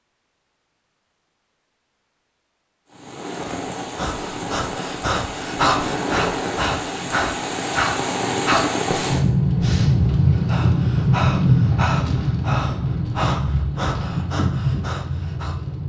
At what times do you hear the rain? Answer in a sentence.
The rain can be heard from 2.9 to 15.8 s.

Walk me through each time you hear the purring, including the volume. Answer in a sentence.
You can't hear the purring here.